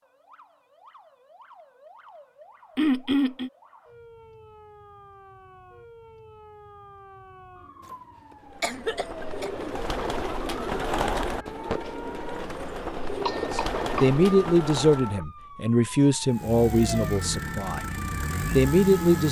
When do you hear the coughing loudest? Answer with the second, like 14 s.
3 s.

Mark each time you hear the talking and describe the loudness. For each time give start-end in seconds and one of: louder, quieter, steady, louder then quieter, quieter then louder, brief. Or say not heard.
13.5-17.8 quieter
18.6-19.2 brief.